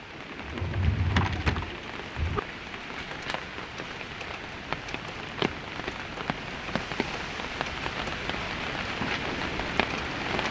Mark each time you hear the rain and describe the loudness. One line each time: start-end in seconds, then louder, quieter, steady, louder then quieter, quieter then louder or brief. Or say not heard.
0.0-10.4 louder.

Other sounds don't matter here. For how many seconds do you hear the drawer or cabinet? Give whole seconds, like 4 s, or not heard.
2 s.